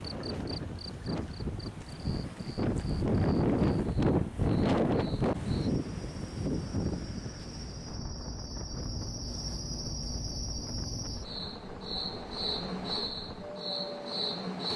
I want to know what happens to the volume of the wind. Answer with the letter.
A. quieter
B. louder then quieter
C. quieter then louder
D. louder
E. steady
B.